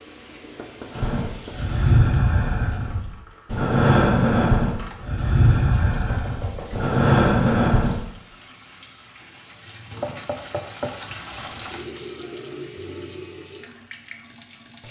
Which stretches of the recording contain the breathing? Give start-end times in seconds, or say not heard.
0.9-8.1.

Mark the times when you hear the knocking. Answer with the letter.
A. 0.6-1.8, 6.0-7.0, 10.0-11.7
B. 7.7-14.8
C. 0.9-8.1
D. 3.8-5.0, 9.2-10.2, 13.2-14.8
A.